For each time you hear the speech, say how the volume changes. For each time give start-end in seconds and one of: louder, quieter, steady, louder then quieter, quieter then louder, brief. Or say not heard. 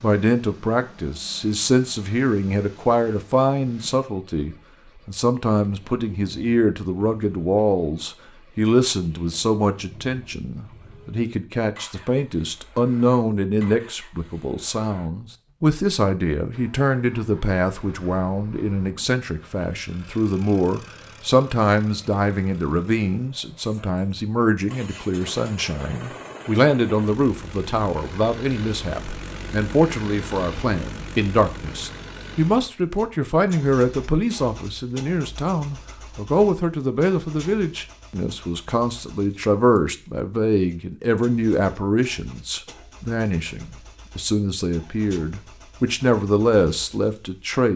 0.0-47.7 steady.